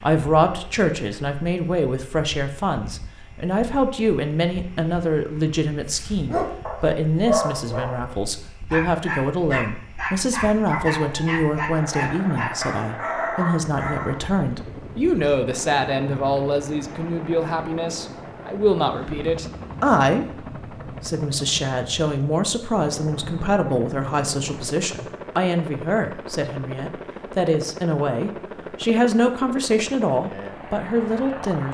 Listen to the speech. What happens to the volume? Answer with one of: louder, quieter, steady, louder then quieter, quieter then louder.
steady.